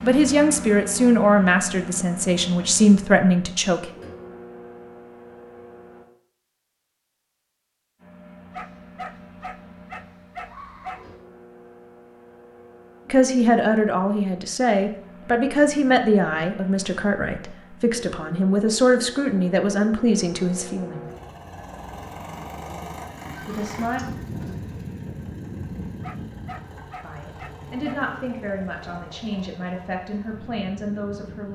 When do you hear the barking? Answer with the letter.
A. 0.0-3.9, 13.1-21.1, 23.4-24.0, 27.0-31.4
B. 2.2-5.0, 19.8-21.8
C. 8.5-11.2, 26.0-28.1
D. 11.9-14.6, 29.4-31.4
C.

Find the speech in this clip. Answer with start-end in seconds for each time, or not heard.
0.0-3.9, 13.1-21.1, 23.4-24.0, 27.0-31.4.